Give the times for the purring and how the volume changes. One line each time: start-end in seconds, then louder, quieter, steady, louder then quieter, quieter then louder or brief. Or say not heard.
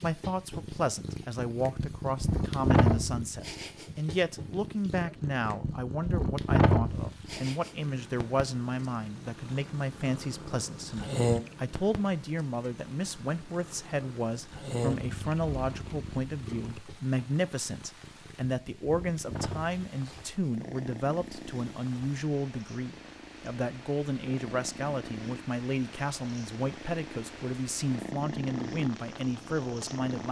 0.0-30.2 quieter.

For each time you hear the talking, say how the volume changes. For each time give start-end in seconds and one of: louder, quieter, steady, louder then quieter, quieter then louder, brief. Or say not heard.
0.0-30.2 steady.